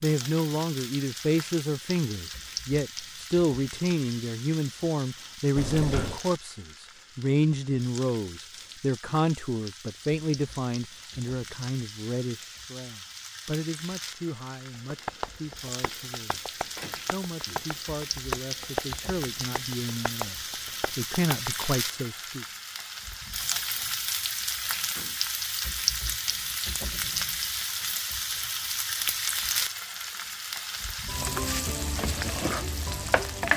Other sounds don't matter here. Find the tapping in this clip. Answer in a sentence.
You can hear the tapping from 14.9 to 21.6 s.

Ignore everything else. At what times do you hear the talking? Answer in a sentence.
The talking can be heard from 0.0 to 22.4 s.